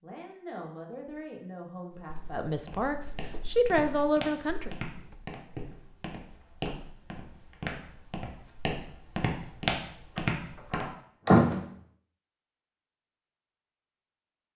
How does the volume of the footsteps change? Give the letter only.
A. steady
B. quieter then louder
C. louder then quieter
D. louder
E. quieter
D.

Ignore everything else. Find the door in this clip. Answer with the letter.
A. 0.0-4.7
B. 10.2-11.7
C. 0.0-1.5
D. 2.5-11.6
B.